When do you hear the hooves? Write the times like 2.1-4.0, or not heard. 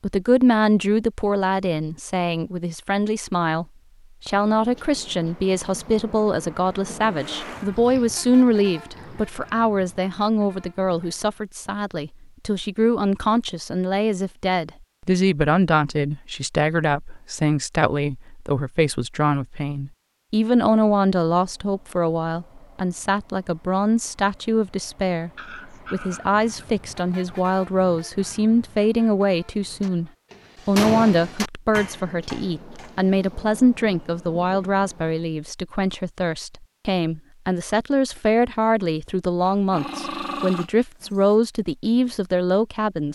not heard.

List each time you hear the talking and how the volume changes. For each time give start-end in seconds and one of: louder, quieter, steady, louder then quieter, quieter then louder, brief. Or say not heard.
0.0-43.1 steady.